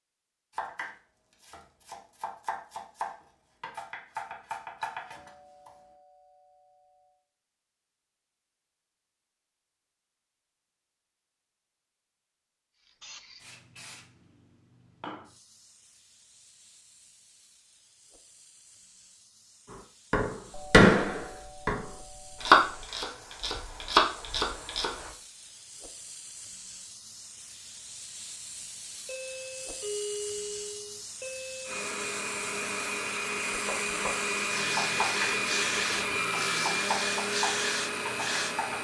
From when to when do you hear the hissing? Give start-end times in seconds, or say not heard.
12.8-38.7.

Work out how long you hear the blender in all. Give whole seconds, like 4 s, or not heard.
7 s.